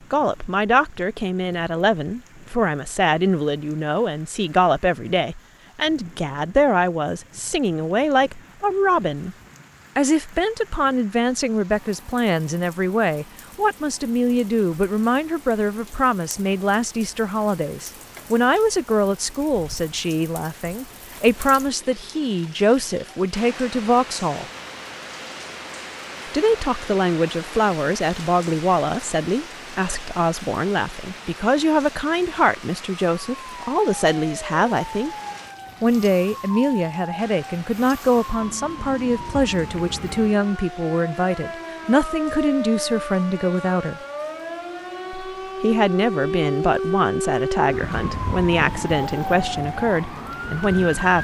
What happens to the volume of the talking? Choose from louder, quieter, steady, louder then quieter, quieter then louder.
steady.